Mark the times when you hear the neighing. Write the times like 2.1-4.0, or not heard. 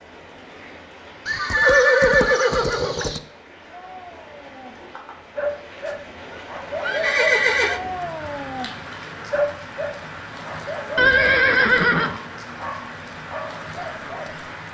1.2-3.2, 5.8-7.8, 10.9-12.2.